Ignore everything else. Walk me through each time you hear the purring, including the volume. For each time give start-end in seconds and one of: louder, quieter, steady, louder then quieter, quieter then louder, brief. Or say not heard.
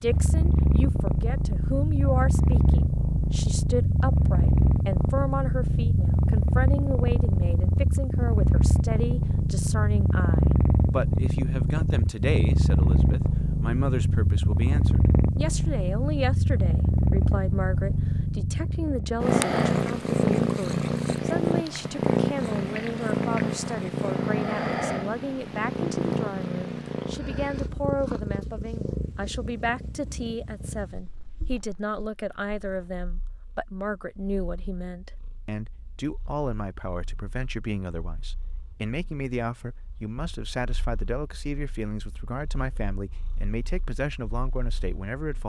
0.0-45.4 quieter.